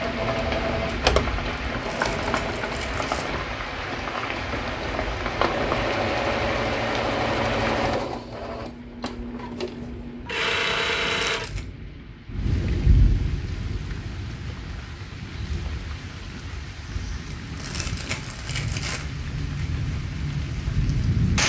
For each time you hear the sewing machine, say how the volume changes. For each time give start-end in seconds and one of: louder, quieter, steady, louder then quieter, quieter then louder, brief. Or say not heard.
0.0-11.5 quieter then louder.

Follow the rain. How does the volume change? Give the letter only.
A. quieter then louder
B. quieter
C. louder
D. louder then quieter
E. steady
A.